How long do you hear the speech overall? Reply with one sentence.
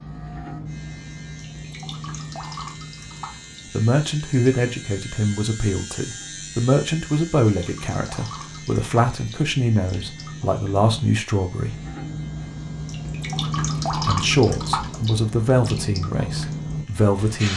The speech can be heard for 12 seconds in total.